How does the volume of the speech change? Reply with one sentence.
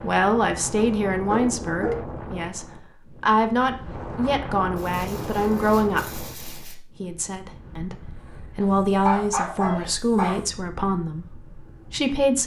The loudness of the speech stays about the same.